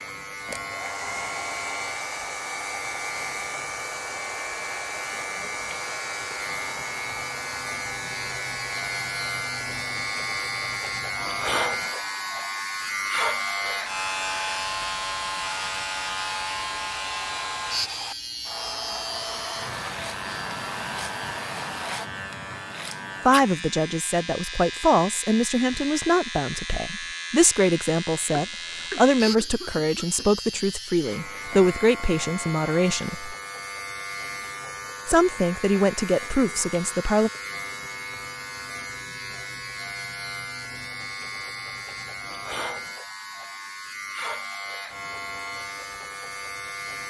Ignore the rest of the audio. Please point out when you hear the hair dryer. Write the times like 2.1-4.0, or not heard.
0.0-22.1.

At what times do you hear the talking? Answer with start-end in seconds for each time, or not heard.
23.2-33.4, 35.0-37.3.